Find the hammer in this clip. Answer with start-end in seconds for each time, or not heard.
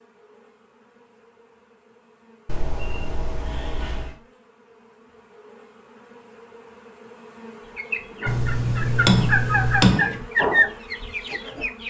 8.6-10.2.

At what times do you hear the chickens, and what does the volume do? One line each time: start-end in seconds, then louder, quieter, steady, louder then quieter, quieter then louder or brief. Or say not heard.
7.8-11.8 louder then quieter.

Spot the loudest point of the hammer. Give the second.
10 s.